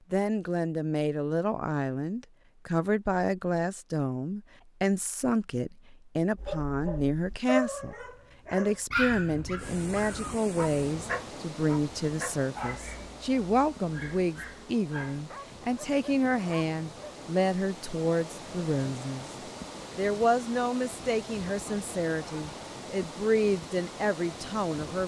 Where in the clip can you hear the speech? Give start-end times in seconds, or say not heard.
0.1-19.3, 19.9-25.0.